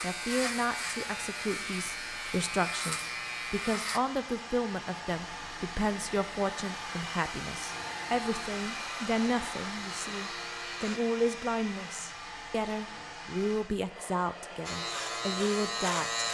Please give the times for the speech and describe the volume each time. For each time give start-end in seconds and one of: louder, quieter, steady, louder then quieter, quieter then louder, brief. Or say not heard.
0.0-16.2 steady.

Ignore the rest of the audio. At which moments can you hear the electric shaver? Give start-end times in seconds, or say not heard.
0.0-4.0, 7.8-11.0, 14.7-16.2.